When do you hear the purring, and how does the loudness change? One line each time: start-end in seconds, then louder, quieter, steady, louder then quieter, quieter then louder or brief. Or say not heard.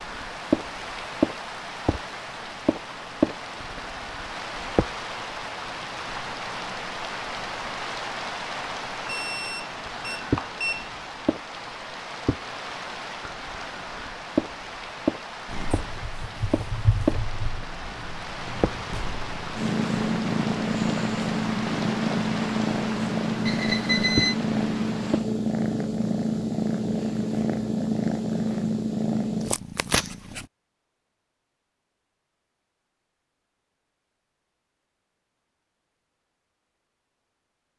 15.4-30.4 louder.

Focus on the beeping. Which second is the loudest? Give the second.
24 s.